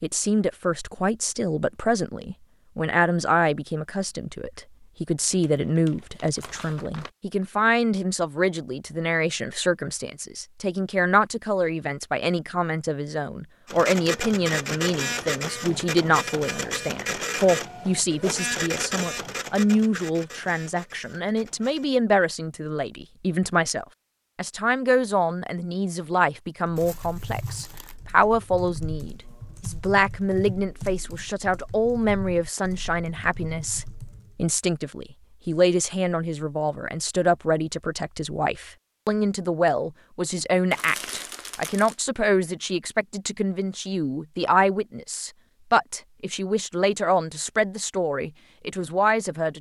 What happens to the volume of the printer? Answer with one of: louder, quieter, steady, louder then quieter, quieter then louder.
quieter.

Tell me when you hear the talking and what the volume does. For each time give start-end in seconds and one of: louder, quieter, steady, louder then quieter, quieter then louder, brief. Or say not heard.
0.0-49.5 steady.